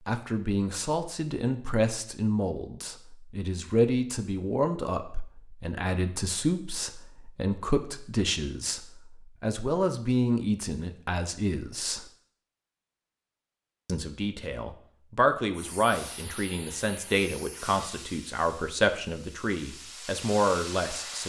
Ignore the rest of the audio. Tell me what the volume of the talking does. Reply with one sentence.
The volume of the talking stays about the same.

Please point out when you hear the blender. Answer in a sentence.
The blender can't be heard in this clip.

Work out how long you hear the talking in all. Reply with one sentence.
You can hear the talking for 19 seconds altogether.